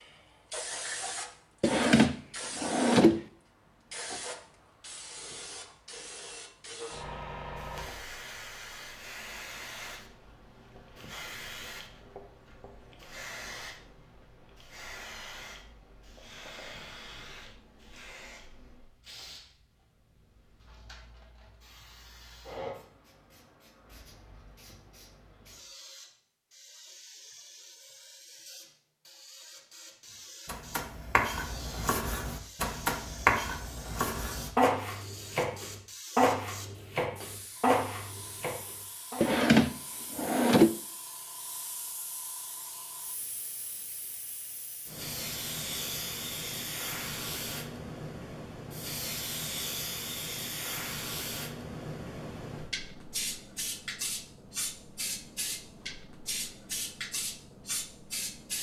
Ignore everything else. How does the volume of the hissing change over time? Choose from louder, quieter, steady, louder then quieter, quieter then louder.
quieter then louder.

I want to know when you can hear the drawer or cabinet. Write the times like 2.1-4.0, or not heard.
1.6-3.2, 39.2-40.7.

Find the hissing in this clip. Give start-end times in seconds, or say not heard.
0.0-58.5.